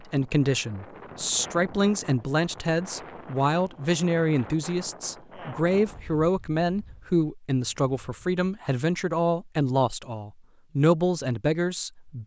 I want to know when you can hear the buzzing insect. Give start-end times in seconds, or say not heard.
not heard.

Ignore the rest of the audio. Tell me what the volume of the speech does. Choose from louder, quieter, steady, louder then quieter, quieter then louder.
steady.